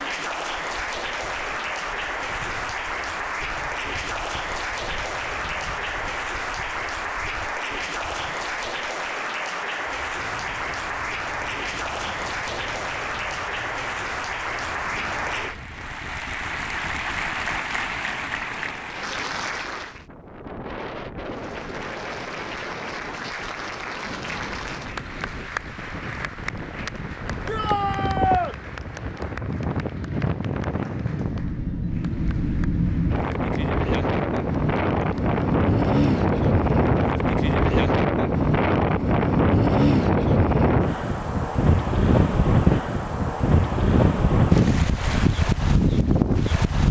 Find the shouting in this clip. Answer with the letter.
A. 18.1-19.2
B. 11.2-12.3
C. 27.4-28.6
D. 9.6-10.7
C.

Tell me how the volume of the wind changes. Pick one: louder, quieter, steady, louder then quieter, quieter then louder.
louder.